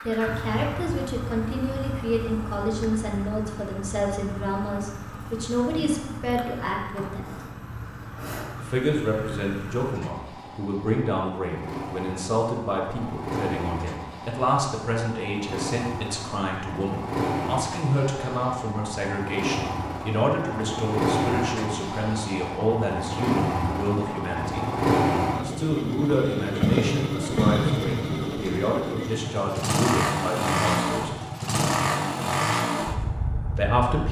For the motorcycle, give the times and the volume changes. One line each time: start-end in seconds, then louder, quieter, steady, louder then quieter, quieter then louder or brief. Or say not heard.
0.0-34.0 louder.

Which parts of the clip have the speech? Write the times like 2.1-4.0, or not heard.
0.0-7.3, 8.6-24.7, 25.4-31.1, 33.5-34.0.